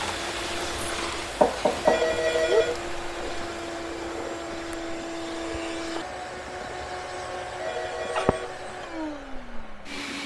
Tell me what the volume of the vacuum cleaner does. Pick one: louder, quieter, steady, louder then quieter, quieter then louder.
steady.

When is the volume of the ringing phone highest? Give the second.
2 s.